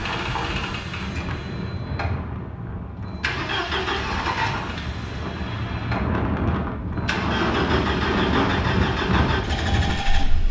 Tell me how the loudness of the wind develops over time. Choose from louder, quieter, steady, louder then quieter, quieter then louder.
louder.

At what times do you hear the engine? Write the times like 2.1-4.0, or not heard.
0.0-10.4.